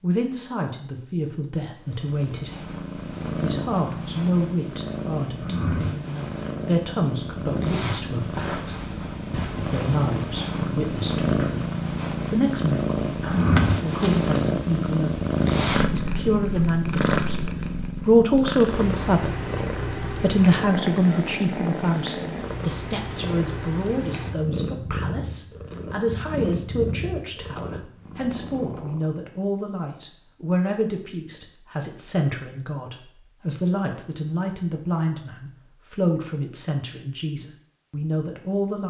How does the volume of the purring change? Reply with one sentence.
The loudness of the purring goes up, then down.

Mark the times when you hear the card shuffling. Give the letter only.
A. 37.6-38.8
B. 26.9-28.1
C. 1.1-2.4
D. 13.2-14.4
D.